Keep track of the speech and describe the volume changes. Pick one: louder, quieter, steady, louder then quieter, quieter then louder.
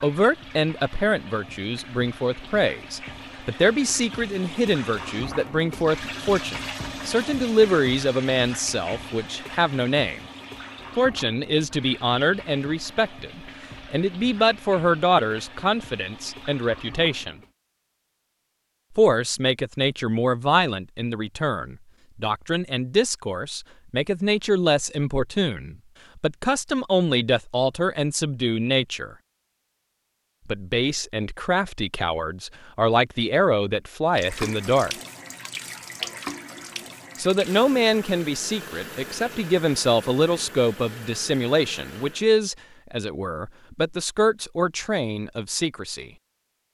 steady.